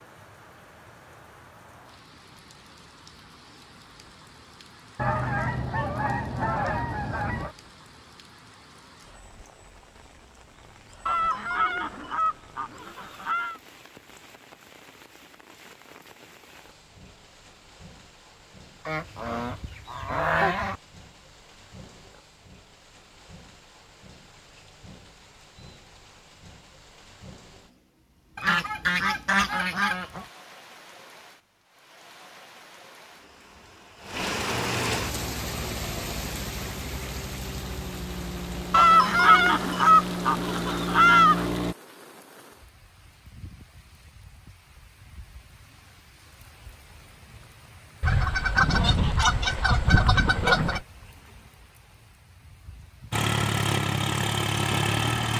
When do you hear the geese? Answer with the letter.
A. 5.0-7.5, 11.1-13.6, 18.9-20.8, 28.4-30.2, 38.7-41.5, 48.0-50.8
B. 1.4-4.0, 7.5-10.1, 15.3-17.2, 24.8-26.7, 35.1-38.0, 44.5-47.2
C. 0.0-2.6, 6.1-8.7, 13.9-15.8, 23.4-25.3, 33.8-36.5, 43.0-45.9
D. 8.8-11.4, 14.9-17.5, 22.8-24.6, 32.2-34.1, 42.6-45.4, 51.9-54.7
A.